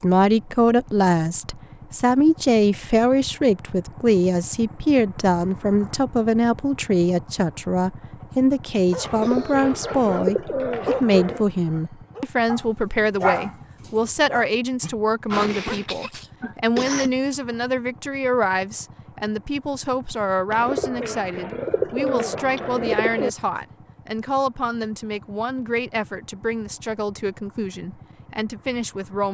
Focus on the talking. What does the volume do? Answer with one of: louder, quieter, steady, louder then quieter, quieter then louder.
quieter.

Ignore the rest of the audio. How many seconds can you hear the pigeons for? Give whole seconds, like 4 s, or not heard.
5 s.